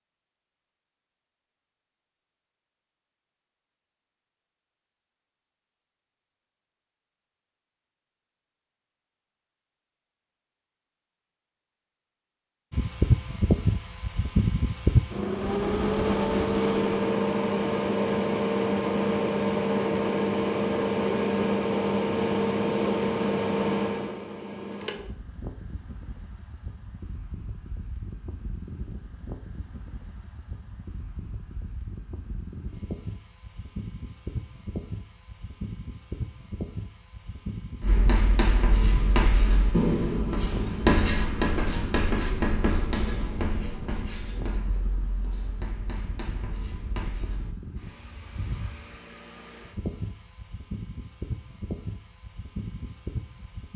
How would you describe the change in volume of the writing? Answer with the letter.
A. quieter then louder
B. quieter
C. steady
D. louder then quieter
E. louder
B.